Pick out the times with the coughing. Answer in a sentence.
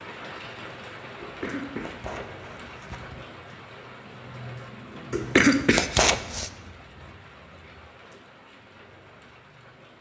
You can hear the coughing from 1.2 to 3.2 s and from 5.1 to 6.5 s.